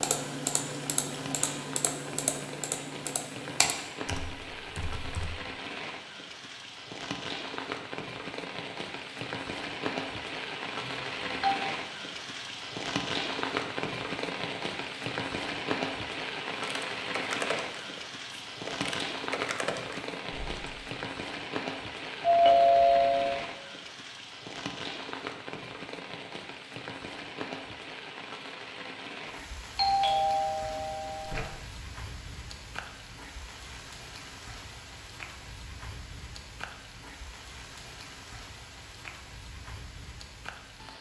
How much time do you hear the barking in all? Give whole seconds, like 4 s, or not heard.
not heard.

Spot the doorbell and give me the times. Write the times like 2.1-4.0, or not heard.
10.8-11.6, 22.2-23.4, 29.8-31.4.